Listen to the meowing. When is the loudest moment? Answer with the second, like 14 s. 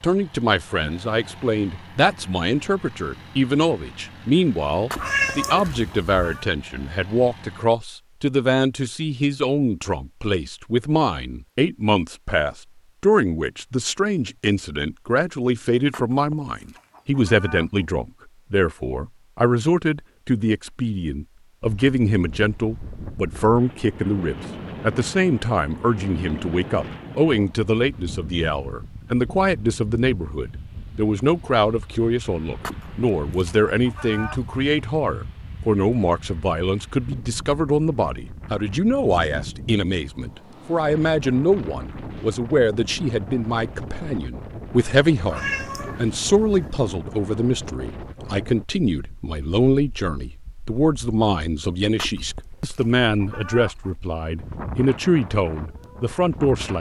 5 s.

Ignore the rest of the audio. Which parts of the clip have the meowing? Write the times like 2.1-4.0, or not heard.
5.0-6.5, 45.2-46.8.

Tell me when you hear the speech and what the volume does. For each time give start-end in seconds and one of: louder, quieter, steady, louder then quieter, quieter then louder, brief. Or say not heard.
0.0-56.7 steady.